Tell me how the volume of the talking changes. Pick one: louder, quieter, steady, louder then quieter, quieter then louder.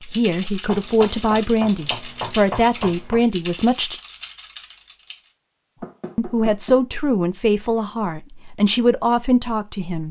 steady.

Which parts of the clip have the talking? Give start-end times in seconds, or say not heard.
0.1-4.0, 6.2-10.0.